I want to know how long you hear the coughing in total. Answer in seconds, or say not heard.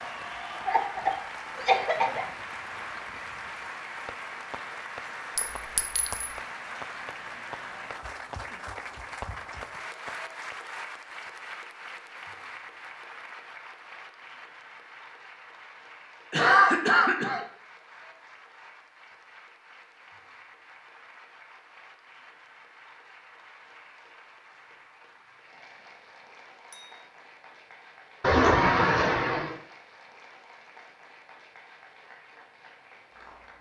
4 s.